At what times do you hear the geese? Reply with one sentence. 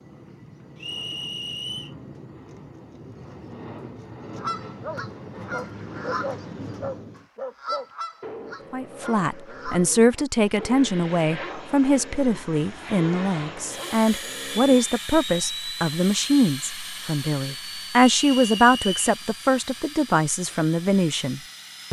The geese can be heard from 4.3 to 10.1 s.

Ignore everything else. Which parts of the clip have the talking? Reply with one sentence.
You can hear the talking from 8.7 to 21.8 s.